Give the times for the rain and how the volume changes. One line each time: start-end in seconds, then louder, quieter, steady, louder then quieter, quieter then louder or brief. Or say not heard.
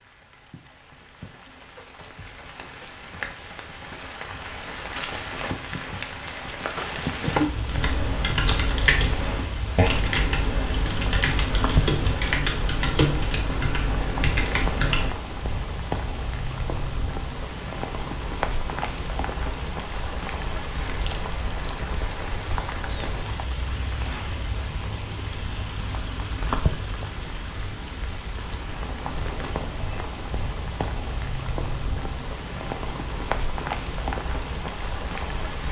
0.0-35.6 steady.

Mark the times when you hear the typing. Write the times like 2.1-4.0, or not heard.
7.7-15.1.